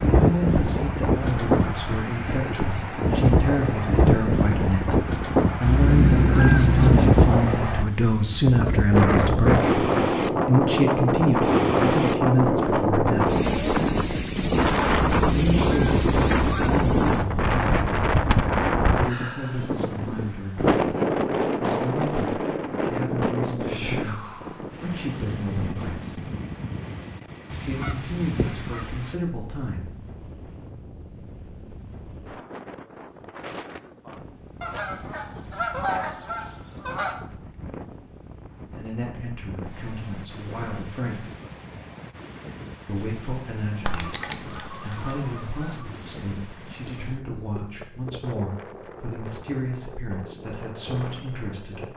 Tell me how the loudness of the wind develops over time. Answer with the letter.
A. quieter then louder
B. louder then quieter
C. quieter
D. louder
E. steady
C.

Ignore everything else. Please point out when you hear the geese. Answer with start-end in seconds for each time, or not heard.
5.7-7.2, 15.2-16.8, 27.5-29.1, 34.6-37.1, 43.9-45.9.